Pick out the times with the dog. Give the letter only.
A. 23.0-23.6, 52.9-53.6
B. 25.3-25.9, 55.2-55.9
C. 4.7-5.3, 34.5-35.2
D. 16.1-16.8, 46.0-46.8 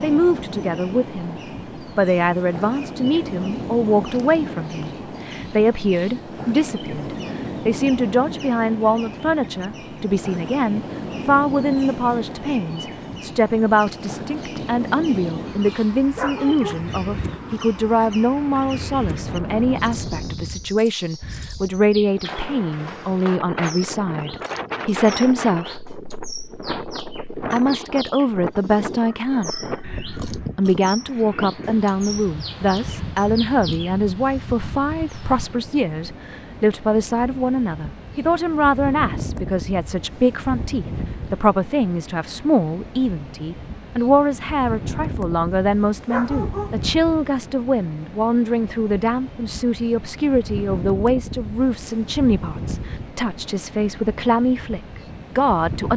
D.